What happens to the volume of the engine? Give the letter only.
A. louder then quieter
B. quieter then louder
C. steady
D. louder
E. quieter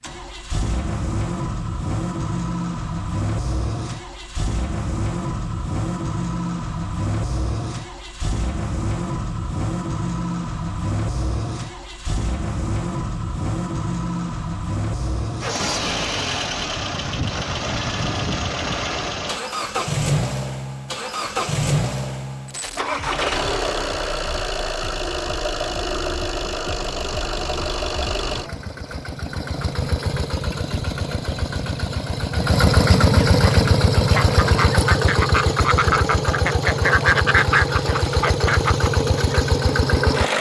D.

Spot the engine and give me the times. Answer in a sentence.
You can hear the engine from 0.0 to 40.3 s.